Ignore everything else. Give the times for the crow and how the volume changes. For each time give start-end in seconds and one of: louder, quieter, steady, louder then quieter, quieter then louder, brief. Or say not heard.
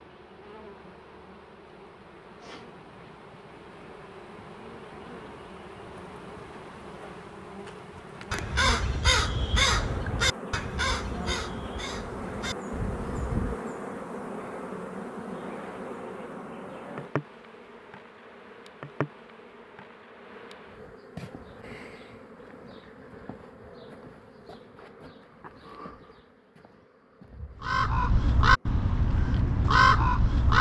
8.0-13.6 quieter
27.6-30.5 brief.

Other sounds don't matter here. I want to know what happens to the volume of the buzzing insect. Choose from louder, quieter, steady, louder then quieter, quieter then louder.
louder then quieter.